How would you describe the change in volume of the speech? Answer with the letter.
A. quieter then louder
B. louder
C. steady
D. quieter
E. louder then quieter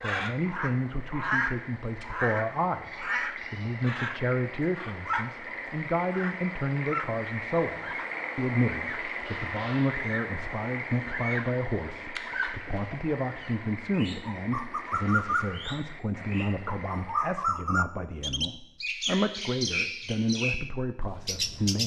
C.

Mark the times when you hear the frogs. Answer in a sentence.
The frogs can be heard from 0.2 to 17.6 s.